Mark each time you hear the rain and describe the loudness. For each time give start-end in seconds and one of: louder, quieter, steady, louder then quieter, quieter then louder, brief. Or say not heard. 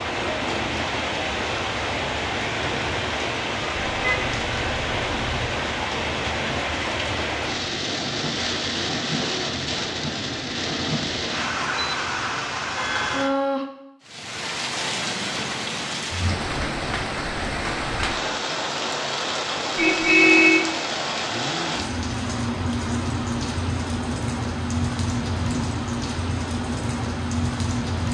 0.0-28.0 steady.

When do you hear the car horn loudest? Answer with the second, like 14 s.
20 s.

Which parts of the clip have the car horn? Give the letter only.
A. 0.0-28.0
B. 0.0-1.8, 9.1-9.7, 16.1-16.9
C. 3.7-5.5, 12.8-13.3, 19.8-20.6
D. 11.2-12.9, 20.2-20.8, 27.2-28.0
C.